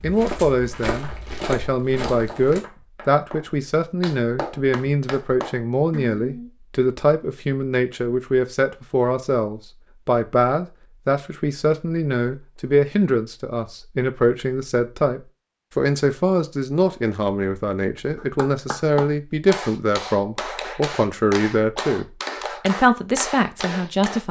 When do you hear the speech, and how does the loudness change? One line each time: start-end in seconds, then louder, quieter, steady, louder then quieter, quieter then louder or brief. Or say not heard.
0.0-24.2 steady.